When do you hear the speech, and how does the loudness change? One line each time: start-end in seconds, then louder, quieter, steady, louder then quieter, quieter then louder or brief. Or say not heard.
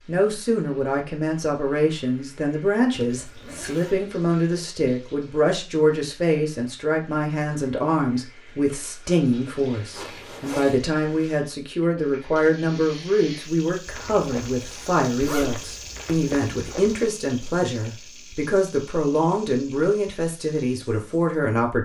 0.1-21.8 steady.